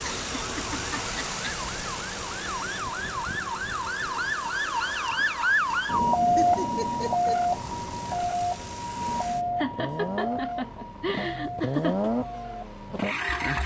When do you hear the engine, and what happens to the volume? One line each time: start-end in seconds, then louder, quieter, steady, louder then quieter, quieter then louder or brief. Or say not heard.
0.0-13.6 quieter then louder.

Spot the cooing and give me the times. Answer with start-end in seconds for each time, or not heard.
not heard.